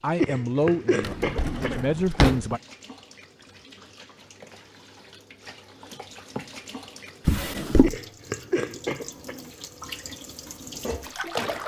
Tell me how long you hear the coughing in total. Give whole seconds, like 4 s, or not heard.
3 s.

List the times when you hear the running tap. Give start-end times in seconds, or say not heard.
0.0-11.6.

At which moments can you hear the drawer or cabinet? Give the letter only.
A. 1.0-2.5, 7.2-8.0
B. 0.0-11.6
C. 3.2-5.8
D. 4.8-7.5
A.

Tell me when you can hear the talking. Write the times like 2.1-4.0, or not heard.
0.0-2.6.